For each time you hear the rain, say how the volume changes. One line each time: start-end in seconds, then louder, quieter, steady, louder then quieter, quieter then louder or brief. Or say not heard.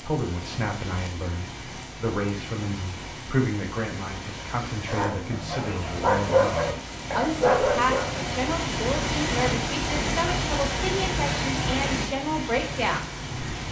0.0-13.6 louder.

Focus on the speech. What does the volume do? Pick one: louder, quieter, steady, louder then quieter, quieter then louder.
steady.